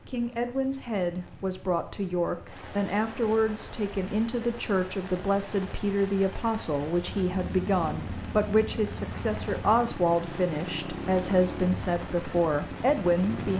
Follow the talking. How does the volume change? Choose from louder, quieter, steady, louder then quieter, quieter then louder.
steady.